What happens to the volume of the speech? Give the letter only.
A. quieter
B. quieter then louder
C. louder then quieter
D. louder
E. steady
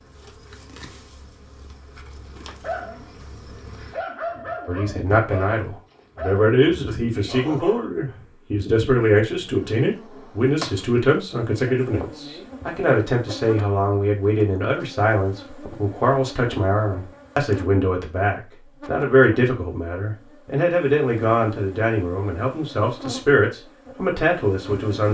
E.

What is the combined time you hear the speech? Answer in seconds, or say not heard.
20 s.